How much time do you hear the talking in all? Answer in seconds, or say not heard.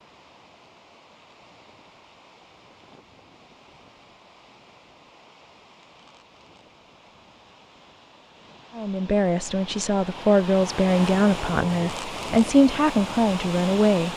5 s.